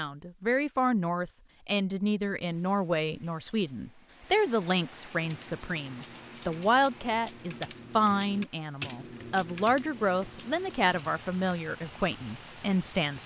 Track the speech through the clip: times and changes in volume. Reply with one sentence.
You can hear the speech from 0.0 to 13.2 s, at a steady volume.